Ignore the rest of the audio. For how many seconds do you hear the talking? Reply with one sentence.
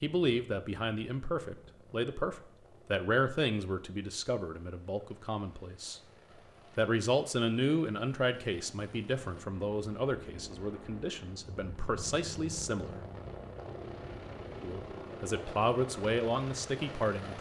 You can hear the talking for 15 seconds altogether.